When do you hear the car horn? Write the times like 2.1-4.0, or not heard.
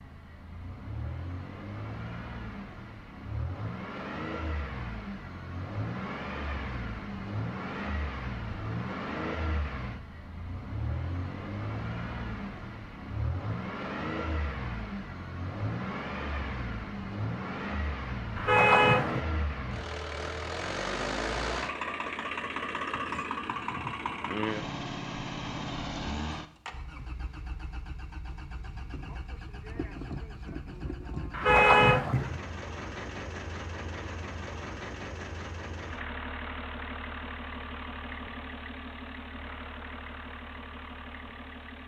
18.4-19.2, 31.3-32.4.